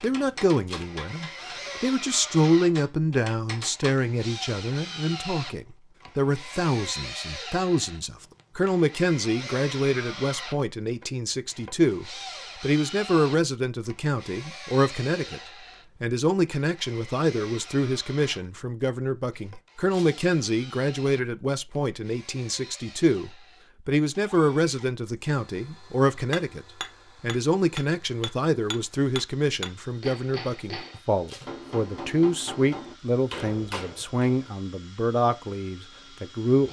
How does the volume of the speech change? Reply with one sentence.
The loudness of the speech stays about the same.